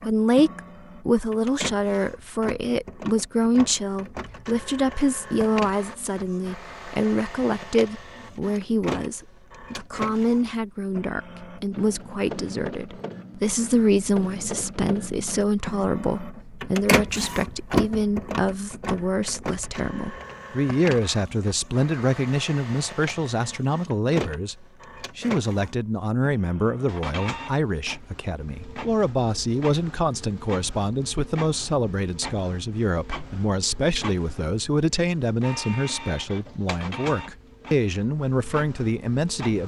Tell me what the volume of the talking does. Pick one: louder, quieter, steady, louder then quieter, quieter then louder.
steady.